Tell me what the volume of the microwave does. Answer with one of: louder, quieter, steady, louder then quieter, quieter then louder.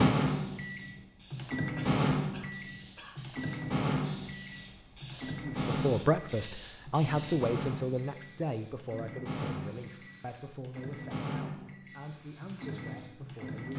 quieter.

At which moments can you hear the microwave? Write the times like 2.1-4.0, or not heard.
0.0-13.7.